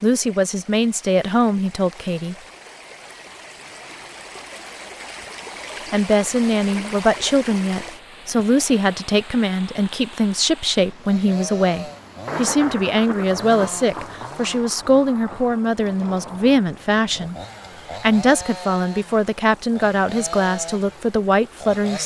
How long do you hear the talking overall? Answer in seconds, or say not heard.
18 s.